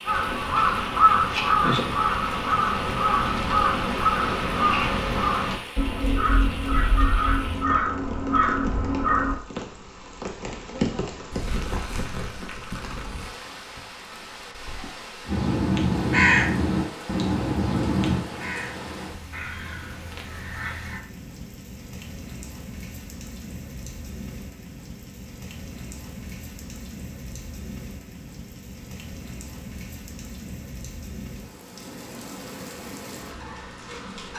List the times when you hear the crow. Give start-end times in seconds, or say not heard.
0.1-9.4, 15.2-21.0.